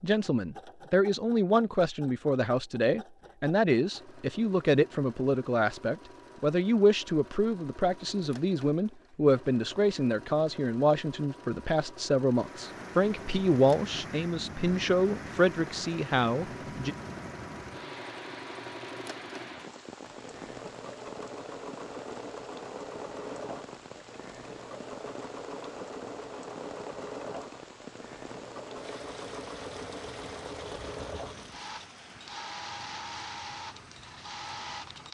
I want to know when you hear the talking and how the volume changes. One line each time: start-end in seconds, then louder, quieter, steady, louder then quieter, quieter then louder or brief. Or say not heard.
0.0-16.9 steady.